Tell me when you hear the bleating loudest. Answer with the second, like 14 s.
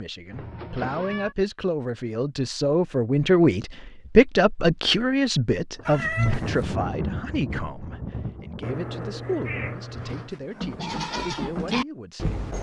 12 s.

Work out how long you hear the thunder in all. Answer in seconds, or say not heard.
3 s.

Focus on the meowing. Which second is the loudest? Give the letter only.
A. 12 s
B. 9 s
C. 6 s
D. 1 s
C.